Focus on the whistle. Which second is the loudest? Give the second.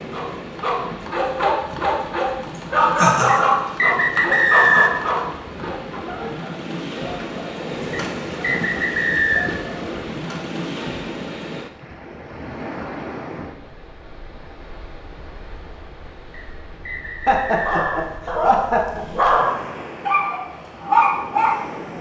5 s.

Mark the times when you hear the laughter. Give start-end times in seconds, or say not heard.
3.0-3.4, 17.2-19.1.